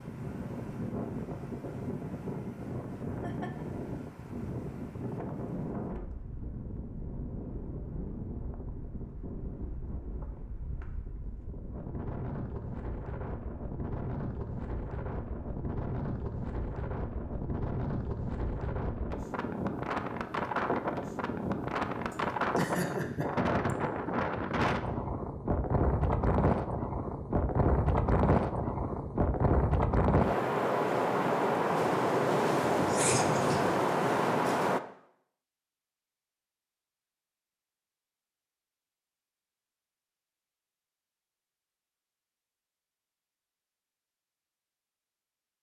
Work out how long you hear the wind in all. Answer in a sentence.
You can hear the wind for 35 seconds altogether.